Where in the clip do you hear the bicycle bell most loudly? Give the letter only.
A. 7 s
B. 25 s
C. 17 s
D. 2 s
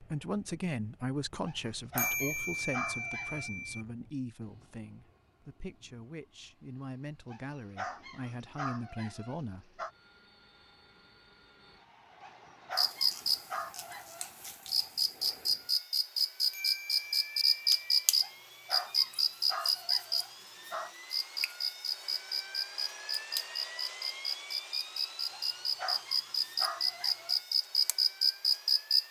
D.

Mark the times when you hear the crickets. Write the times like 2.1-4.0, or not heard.
12.8-29.0.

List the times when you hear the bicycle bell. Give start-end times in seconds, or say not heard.
1.9-3.9, 16.5-18.1.